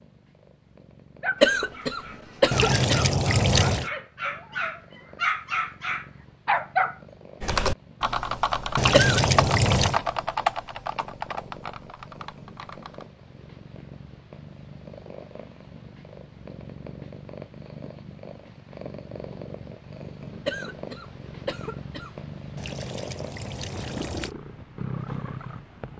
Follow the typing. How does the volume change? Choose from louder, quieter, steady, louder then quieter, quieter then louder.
quieter.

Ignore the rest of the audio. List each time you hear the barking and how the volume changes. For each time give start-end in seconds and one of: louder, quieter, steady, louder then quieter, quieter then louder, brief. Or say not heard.
1.2-7.0 louder.